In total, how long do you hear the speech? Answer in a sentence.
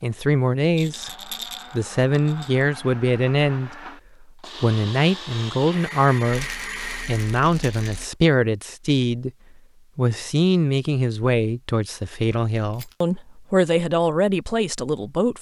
You can hear the speech for 14 seconds altogether.